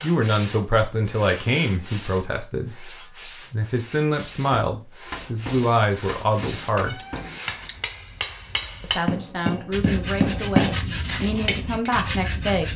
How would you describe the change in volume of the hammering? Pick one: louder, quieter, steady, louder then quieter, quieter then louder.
louder.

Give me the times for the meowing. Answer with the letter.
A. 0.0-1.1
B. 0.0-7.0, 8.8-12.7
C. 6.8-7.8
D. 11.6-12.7
C.